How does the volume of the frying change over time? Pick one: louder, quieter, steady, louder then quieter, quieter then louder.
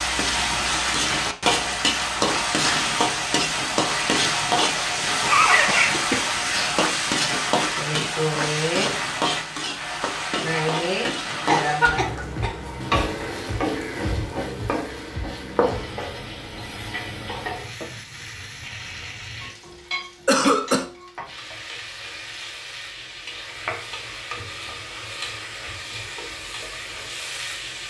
quieter.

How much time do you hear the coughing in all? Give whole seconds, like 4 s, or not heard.
3 s.